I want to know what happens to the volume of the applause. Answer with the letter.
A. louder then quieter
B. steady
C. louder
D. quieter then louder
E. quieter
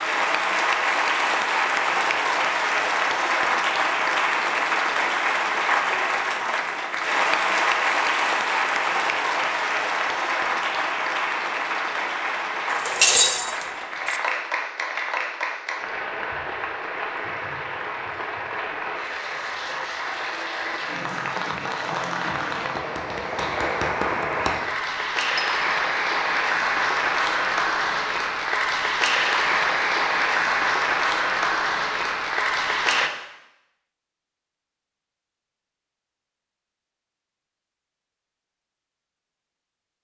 D.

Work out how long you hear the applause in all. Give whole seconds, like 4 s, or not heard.
33 s.